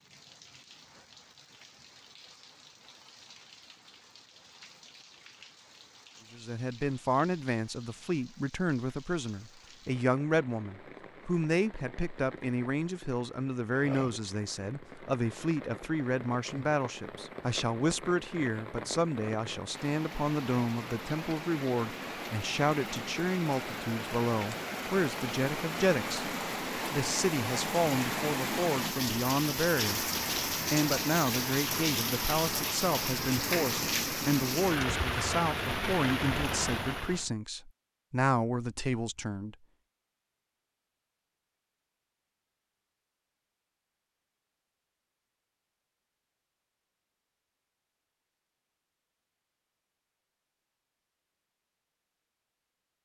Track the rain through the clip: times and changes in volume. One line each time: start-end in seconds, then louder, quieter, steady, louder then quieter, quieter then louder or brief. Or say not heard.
0.0-37.3 louder.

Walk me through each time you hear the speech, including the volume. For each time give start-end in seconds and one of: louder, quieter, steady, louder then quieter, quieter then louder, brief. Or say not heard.
6.3-39.5 steady.